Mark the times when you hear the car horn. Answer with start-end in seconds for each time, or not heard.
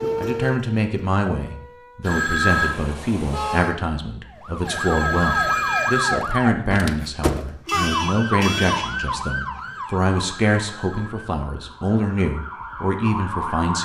2.5-3.8, 7.5-9.1.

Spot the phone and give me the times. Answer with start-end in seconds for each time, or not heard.
2.0-2.7, 4.7-6.2, 9.6-11.1.